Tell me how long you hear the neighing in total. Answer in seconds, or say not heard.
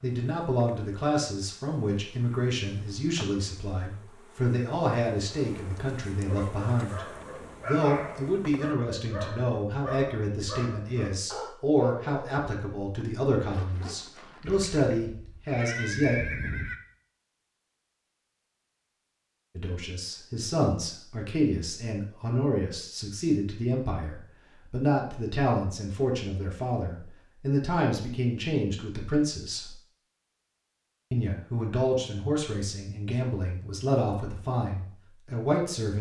2 s.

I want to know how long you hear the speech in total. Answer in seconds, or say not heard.
31 s.